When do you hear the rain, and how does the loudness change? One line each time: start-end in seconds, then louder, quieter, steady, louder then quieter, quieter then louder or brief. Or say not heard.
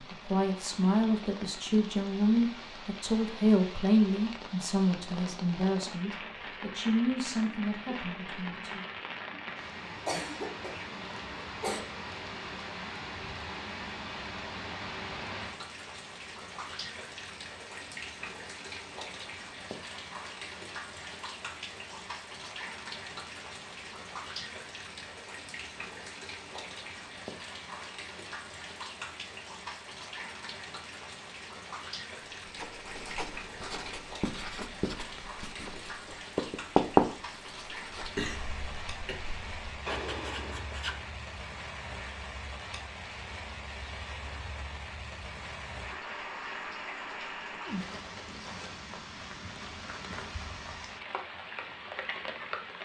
0.0-52.7 steady.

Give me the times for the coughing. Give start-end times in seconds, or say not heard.
9.8-11.8, 38.0-39.1.